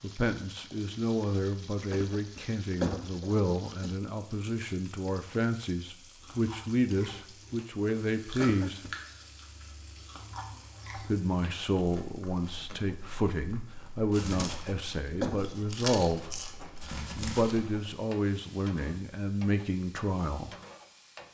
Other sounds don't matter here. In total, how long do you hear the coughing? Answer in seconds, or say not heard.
4 s.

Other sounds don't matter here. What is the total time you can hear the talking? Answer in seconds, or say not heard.
18 s.